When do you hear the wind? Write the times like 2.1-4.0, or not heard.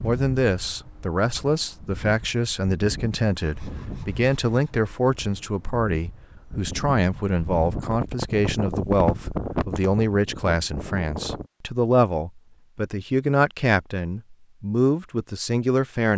0.0-11.5.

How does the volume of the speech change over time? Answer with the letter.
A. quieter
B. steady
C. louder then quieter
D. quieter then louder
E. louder
B.